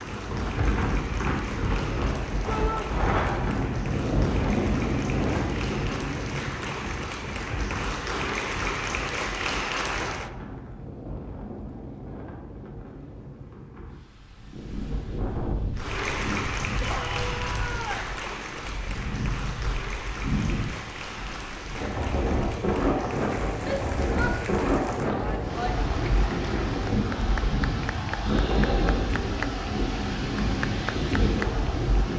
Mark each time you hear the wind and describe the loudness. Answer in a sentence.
You can hear the wind from 0.0 to 32.1 s, getting quieter then louder.